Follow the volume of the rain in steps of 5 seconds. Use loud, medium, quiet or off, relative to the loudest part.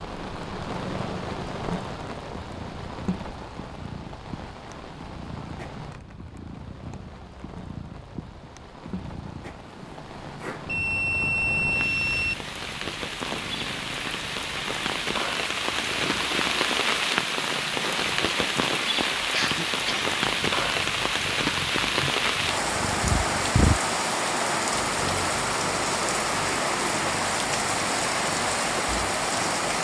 medium, quiet, medium, loud, loud, loud.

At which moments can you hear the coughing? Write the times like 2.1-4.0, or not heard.
19.3-20.2.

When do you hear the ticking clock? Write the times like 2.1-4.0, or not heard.
not heard.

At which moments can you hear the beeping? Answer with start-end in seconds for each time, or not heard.
10.7-12.3.